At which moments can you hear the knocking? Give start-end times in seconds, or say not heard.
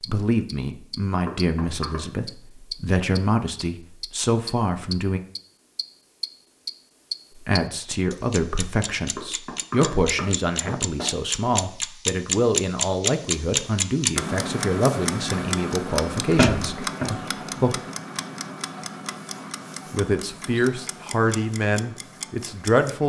1.2-2.0, 9.2-11.1, 16.3-17.1.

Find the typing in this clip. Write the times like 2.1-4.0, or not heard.
not heard.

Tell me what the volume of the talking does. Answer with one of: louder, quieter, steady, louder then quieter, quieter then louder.
steady.